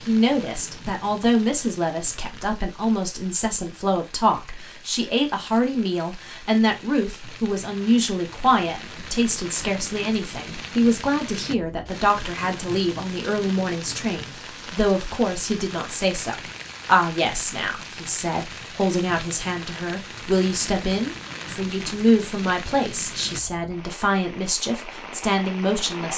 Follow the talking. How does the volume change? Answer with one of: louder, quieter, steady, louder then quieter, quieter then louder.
steady.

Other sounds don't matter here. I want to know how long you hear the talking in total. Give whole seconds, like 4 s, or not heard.
26 s.